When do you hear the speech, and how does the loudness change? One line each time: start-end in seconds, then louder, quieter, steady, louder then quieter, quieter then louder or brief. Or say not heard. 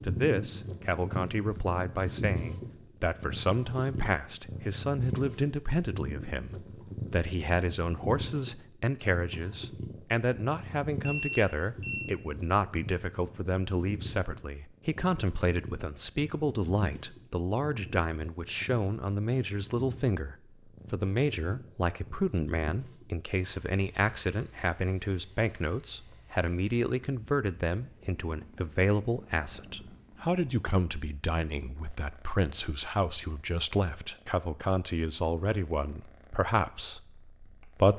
0.0-37.9 steady.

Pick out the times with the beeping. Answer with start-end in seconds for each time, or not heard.
11.0-12.2.